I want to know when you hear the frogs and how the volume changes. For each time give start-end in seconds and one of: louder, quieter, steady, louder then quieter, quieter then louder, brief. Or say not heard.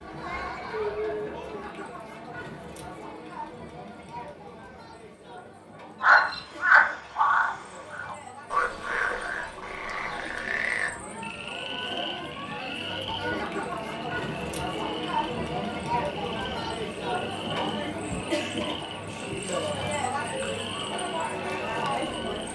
6.0-22.5 quieter.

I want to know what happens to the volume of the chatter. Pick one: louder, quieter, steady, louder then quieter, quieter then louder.
quieter then louder.